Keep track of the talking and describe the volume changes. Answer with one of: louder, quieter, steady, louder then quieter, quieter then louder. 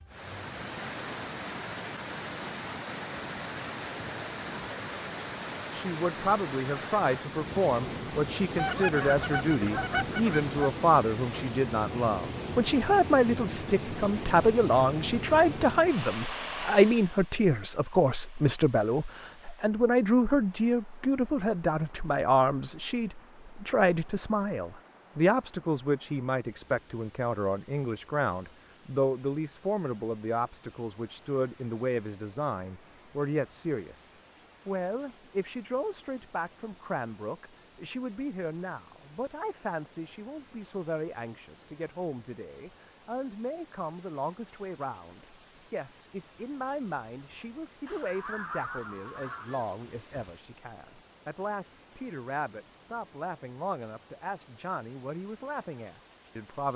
quieter.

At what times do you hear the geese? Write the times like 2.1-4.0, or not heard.
8.6-10.6, 47.9-49.8.